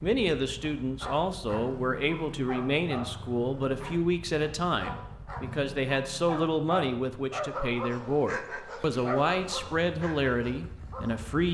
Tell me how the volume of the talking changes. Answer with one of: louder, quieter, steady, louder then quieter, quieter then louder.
steady.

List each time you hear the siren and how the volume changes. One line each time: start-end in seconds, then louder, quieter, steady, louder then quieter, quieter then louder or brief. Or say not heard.
not heard.